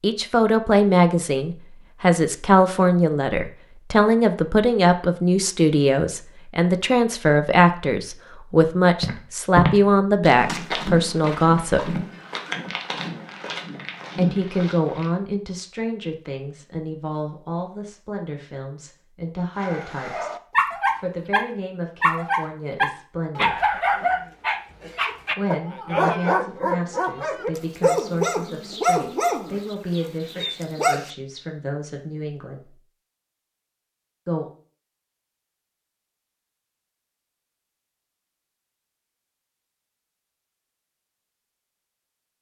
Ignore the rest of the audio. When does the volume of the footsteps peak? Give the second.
10 s.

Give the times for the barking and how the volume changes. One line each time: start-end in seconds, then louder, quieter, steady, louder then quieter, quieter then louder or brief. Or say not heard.
19.6-31.1 steady.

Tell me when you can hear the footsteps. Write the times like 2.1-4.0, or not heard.
9.0-15.1.